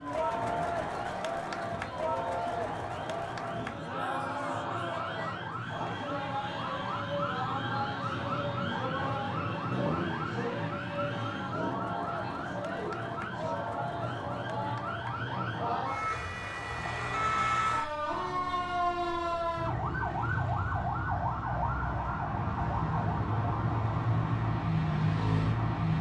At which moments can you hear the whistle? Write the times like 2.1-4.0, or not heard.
not heard.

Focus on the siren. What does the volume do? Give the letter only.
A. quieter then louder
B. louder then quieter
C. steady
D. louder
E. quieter
D.